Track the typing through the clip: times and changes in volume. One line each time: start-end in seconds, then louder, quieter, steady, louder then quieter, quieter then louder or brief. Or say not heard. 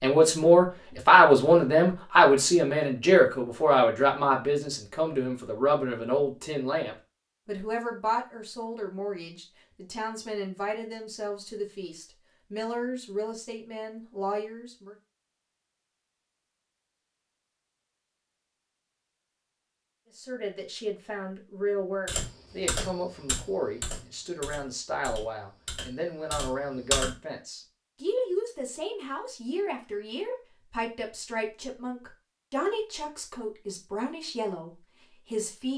22.1-27.1 quieter then louder.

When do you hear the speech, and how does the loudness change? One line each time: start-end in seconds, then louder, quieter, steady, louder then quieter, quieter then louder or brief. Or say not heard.
0.0-14.9 quieter
20.1-35.7 steady.